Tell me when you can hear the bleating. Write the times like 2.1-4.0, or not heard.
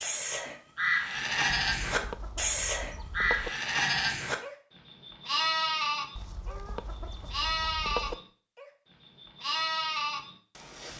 0.0-10.9.